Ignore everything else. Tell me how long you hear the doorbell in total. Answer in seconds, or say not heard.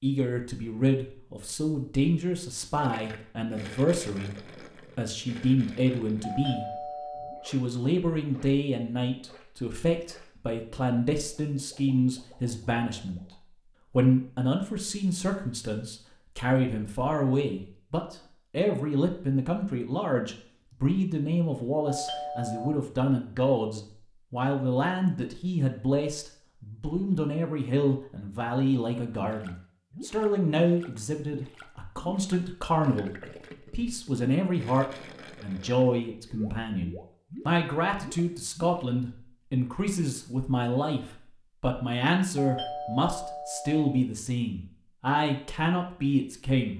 4 s.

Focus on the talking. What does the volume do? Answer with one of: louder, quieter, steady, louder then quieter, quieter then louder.
steady.